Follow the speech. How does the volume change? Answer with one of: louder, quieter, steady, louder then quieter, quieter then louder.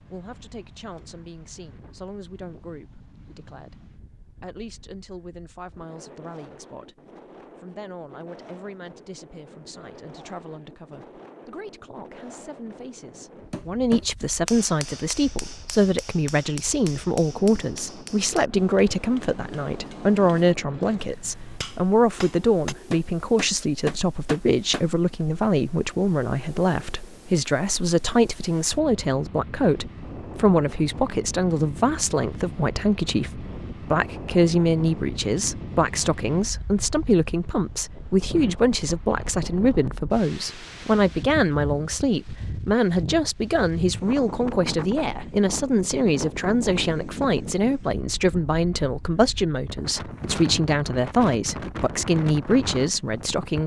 louder.